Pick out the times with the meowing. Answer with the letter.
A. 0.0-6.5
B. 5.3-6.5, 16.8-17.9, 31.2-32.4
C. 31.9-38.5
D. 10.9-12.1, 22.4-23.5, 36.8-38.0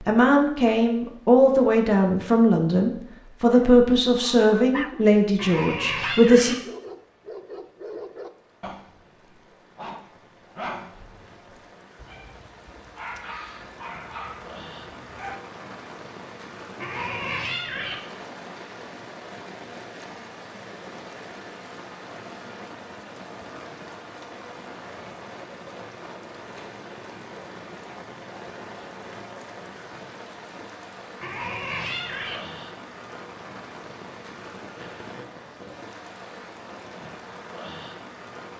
B.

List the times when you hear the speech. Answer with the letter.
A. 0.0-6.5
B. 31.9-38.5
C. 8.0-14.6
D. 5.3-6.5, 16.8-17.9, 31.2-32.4
A.